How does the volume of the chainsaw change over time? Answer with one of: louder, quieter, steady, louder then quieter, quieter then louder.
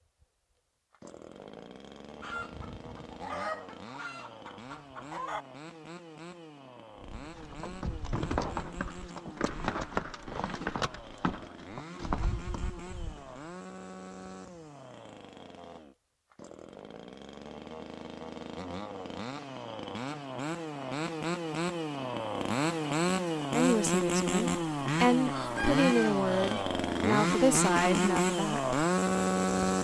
louder.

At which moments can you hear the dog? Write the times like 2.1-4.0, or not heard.
not heard.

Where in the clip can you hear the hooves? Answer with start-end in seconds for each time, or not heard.
7.0-13.4.